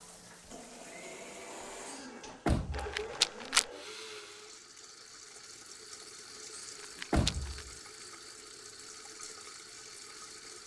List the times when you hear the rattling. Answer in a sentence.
You can hear the rattling from 2.7 to 3.6 s and from 6.8 to 7.7 s.